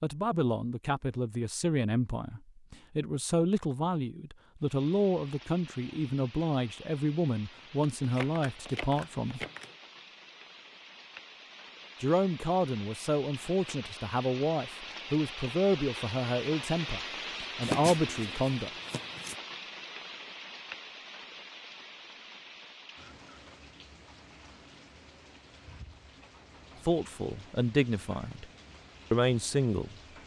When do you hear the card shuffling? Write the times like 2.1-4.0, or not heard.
8.0-9.8, 17.6-19.4.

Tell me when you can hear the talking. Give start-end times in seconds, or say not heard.
0.0-9.4, 12.0-18.7, 26.9-28.4, 29.1-29.9.